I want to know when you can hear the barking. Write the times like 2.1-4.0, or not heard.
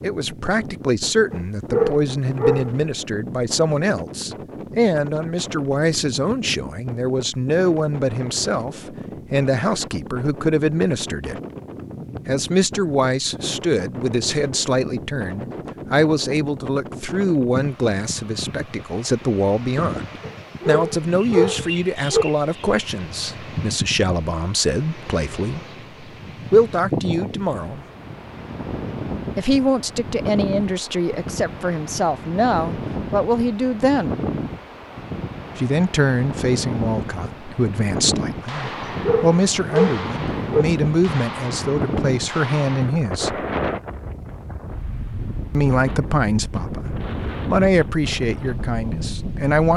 1.3-2.8, 20.2-22.2, 38.6-40.6.